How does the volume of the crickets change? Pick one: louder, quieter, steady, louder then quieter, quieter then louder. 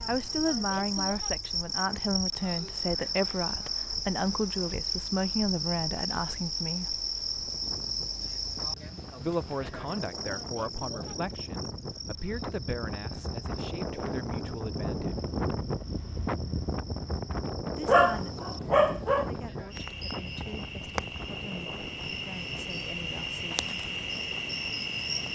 quieter then louder.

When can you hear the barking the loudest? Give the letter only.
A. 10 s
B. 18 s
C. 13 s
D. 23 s
B.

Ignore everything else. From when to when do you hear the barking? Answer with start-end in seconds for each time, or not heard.
17.9-19.3.